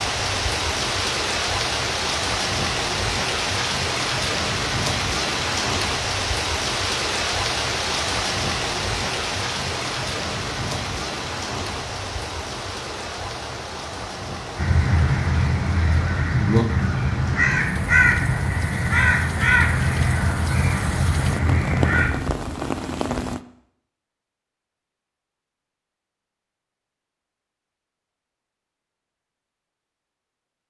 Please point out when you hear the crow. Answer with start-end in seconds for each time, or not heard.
14.6-22.1.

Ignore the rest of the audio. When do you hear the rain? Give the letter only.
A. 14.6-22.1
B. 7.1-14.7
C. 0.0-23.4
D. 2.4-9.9
C.